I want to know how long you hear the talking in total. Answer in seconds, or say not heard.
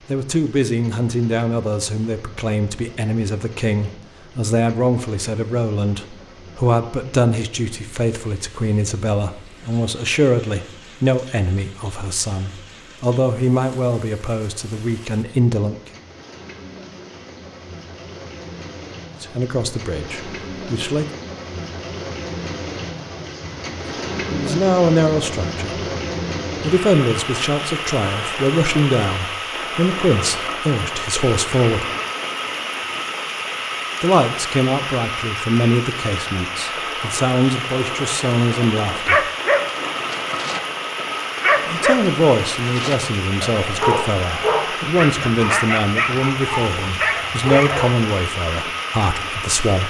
38 s.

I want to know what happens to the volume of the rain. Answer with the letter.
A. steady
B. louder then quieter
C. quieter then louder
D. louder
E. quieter
D.